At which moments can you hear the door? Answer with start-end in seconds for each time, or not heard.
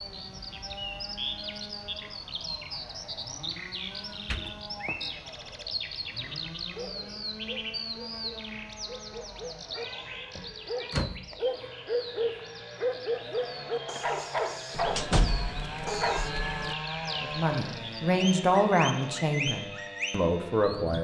4.2-5.2, 10.3-11.2, 14.9-15.6.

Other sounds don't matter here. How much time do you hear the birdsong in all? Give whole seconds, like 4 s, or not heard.
21 s.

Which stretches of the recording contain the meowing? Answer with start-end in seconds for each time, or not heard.
3.9-5.0, 9.7-11.4, 14.7-16.8.